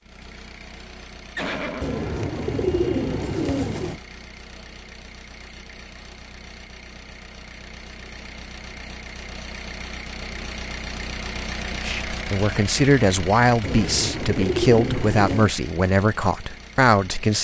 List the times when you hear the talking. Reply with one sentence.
The talking can be heard from 11.8 to 17.3 s.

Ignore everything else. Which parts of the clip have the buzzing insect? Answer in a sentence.
You can't hear the buzzing insect here.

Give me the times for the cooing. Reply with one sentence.
The cooing can be heard from 1.8 to 4.0 s and from 13.6 to 15.5 s.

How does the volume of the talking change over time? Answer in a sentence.
The volume of the talking stays about the same.